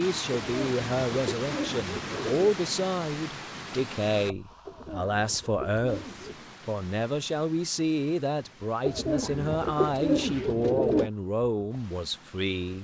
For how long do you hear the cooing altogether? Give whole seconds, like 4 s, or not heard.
6 s.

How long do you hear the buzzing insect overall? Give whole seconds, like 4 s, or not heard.
not heard.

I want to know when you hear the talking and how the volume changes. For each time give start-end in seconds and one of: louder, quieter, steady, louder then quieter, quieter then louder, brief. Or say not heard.
0.0-12.7 steady.